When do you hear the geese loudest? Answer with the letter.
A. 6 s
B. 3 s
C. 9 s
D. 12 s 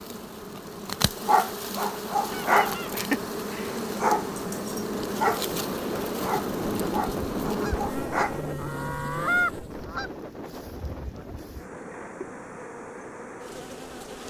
C.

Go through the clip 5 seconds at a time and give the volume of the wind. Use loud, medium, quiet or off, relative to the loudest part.
medium, loud, medium.